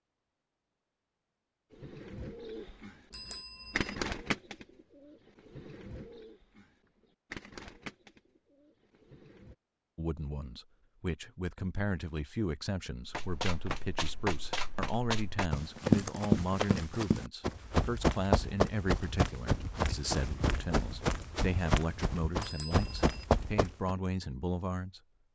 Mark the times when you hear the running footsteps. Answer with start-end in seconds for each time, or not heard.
13.1-23.9.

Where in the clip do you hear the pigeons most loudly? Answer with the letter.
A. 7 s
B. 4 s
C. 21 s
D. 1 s
B.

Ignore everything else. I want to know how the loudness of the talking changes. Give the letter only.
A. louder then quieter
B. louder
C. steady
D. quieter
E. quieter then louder
C.